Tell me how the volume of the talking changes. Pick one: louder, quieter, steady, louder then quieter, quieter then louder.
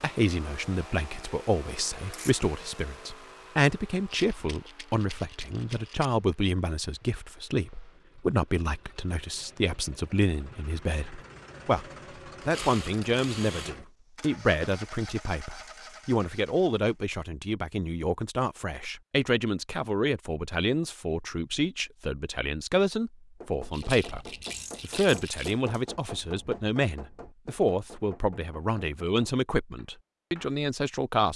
steady.